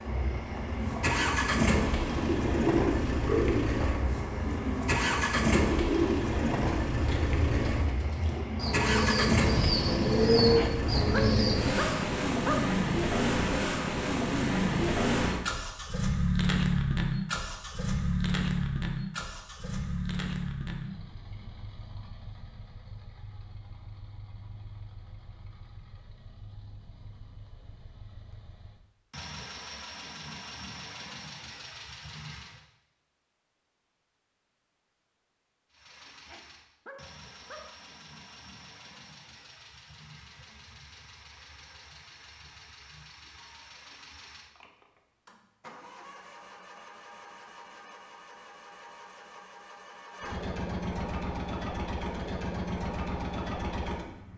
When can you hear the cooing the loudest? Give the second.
10 s.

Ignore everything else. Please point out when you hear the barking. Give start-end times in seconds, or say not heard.
10.4-12.8, 36.1-37.8.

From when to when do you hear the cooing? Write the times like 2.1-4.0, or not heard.
0.5-12.0.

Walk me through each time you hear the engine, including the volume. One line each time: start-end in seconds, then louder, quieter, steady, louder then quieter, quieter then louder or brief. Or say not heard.
0.0-32.6 quieter
35.7-54.3 louder.